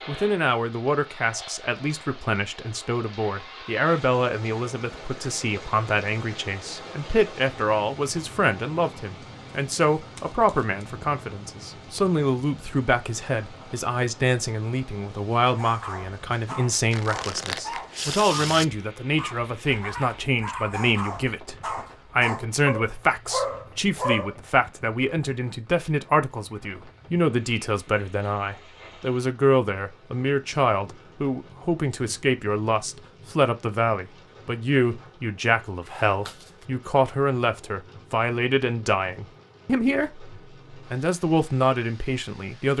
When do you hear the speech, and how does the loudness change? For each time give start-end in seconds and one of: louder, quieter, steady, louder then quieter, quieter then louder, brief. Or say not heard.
0.1-42.7 steady.